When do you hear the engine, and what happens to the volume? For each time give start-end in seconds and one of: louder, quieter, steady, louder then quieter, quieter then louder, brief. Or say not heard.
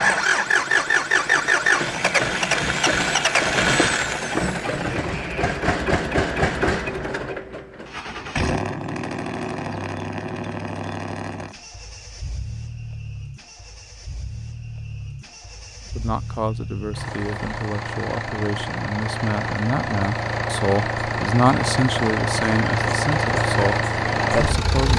0.0-24.9 quieter then louder.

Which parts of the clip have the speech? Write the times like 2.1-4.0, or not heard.
15.9-24.9.